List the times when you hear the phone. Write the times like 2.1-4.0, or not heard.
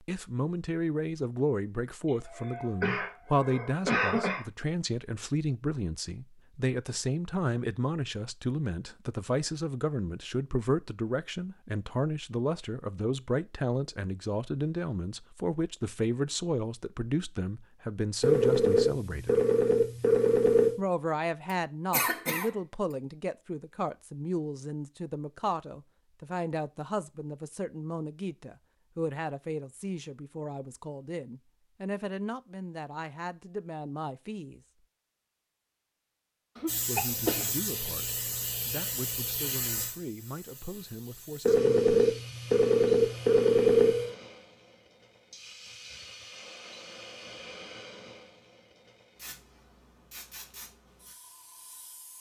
18.2-20.8, 41.5-44.1.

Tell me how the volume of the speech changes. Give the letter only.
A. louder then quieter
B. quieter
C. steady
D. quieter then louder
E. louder
B.